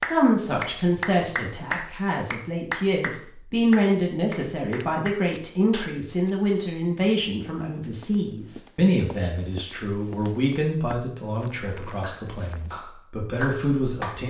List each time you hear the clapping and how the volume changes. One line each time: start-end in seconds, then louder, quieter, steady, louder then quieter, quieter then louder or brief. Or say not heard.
0.0-5.8 quieter
12.0-14.2 brief.